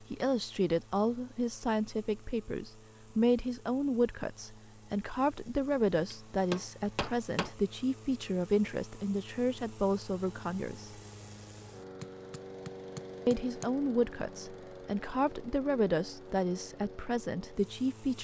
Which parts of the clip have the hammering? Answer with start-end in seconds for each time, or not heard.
6.1-7.5, 12.0-13.7.